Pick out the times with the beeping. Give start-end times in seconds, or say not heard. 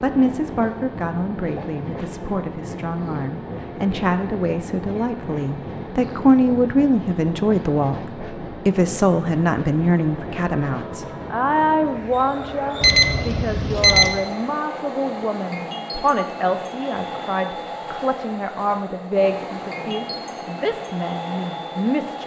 12.8-14.1.